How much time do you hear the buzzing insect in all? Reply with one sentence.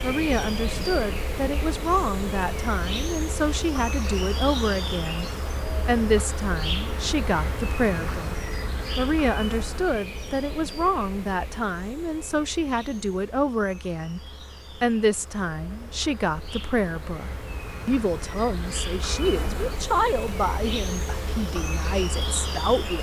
You can hear the buzzing insect for 23 seconds altogether.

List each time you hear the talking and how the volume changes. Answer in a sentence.
The talking can be heard from 0.0 to 8.3 s, at a steady volume; and from 8.9 to 22.9 s, at a steady volume.